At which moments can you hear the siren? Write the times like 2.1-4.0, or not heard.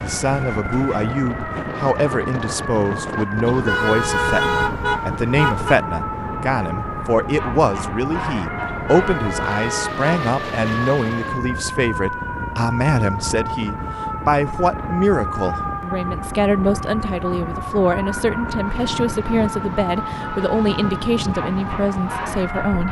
0.0-22.8.